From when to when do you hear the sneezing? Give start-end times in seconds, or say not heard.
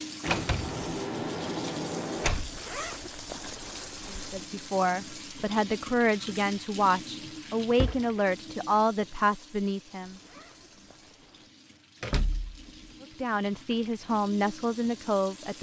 not heard.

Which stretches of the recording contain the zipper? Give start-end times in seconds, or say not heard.
2.5-4.5, 10.1-11.5.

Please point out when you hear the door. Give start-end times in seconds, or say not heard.
0.2-2.5, 7.2-8.1, 12.0-12.9.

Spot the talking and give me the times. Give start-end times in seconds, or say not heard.
4.0-10.2, 13.0-15.5.